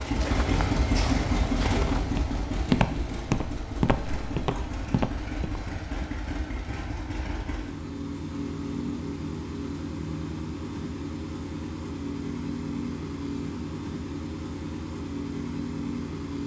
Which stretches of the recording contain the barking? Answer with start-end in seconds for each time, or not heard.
not heard.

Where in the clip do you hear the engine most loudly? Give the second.
1 s.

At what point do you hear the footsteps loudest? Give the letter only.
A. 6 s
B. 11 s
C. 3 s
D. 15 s
C.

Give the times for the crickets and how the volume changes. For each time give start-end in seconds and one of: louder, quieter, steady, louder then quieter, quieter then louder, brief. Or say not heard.
not heard.